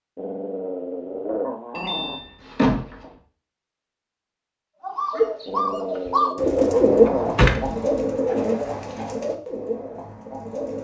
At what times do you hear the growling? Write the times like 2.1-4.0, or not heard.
0.1-2.2, 5.5-7.4.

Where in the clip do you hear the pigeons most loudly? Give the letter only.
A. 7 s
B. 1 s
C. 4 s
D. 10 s
A.